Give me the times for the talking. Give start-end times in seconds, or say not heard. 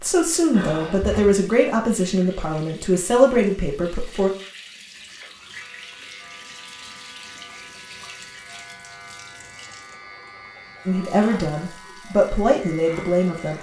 0.0-4.3, 10.8-13.5.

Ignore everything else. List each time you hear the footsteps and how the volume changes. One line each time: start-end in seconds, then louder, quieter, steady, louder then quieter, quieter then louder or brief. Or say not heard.
not heard.